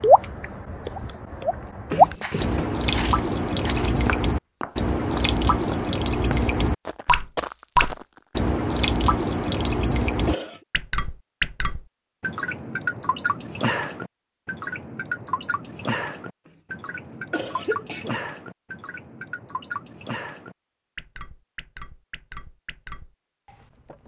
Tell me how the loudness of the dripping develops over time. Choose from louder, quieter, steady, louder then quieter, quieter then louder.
quieter.